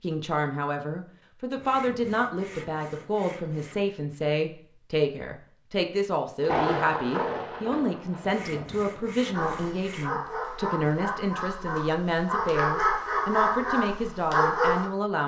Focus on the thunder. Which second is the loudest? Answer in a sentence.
The loudest moment of the thunder is at 7 seconds.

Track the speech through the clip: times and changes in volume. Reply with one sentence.
You can hear the speech from 0.0 to 15.2 s, at a steady volume.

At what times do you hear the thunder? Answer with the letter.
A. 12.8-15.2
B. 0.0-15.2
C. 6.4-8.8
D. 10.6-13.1
C.